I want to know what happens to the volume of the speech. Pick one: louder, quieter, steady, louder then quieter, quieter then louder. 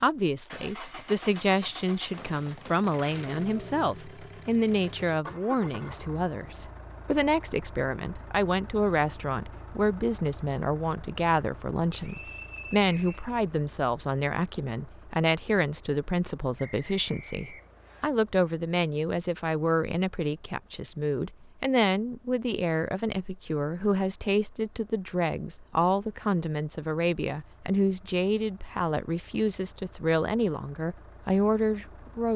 steady.